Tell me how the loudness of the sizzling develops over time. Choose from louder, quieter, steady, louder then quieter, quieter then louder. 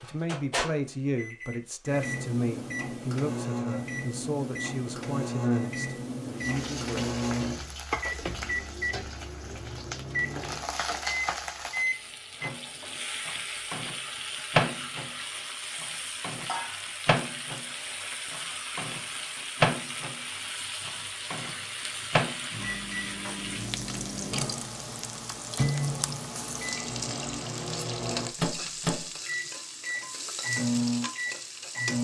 steady.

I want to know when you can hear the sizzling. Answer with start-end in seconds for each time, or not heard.
6.3-32.0.